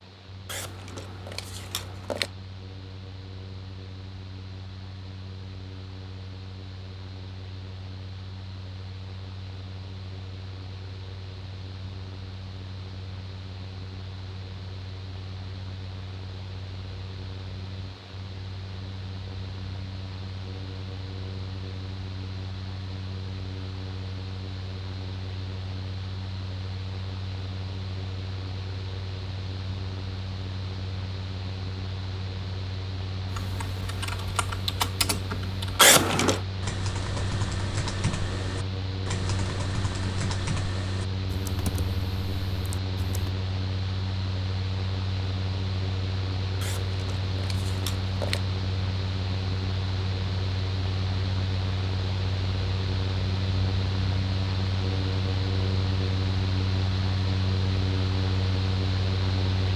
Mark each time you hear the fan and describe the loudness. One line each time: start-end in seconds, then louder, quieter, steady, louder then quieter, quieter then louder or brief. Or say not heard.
0.0-59.7 louder.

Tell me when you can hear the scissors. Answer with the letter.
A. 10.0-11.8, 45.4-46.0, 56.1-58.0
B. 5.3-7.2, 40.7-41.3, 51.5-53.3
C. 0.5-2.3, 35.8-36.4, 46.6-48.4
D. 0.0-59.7
C.